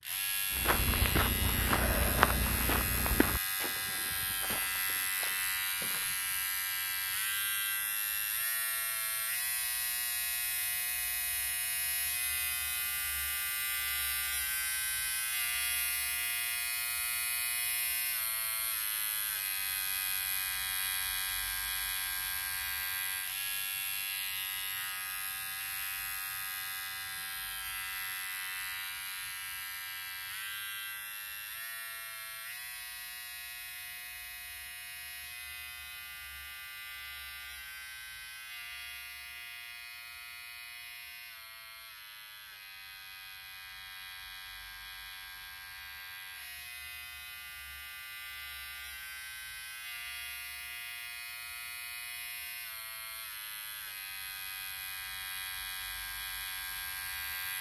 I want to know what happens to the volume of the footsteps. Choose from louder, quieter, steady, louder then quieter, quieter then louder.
quieter.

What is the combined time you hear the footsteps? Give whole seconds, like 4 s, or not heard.
6 s.